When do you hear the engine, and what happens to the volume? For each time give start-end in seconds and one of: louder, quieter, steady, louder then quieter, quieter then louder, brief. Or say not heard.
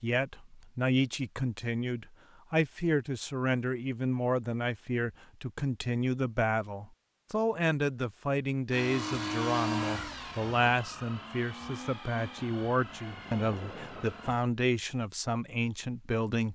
8.7-14.4 quieter.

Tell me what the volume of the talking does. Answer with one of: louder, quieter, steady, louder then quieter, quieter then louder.
steady.